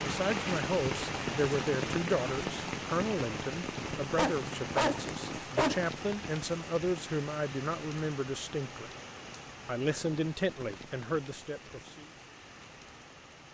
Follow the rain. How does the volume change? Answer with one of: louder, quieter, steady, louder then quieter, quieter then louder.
quieter.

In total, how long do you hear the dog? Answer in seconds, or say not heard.
2 s.